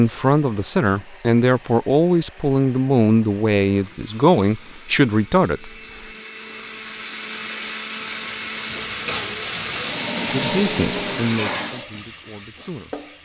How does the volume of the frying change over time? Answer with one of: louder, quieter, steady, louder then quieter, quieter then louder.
louder then quieter.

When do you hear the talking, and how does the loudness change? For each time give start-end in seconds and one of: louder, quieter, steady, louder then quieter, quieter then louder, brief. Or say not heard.
0.0-5.7 steady
10.2-13.0 brief.